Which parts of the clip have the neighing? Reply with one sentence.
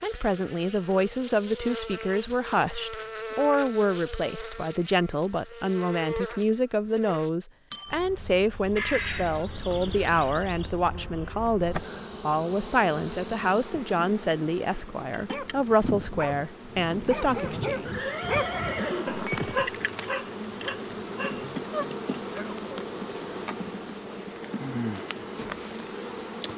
You can hear the neighing from 8.8 to 10.3 s and from 17.9 to 19.7 s.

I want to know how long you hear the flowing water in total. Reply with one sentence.
The flowing water can't be heard in this clip.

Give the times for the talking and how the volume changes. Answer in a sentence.
The talking can be heard from 0.0 to 18.1 s, at a steady volume.